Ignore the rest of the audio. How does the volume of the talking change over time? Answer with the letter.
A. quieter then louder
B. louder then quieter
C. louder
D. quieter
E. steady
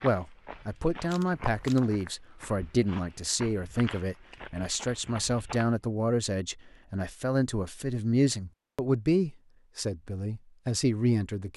E.